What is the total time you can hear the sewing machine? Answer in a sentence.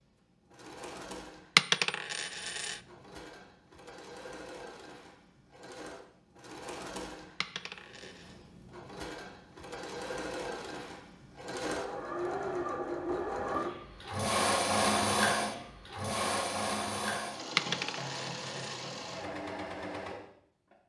The sewing machine can be heard for 21 seconds in total.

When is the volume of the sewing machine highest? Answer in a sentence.
The volume of the sewing machine peaks at 15 seconds.